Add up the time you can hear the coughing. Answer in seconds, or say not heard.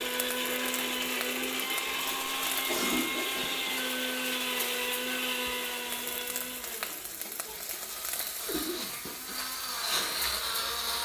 2 s.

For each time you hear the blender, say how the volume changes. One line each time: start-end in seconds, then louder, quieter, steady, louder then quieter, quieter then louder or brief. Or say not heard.
0.0-10.9 quieter then louder.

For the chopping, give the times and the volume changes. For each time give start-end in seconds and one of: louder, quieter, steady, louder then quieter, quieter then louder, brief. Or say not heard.
not heard.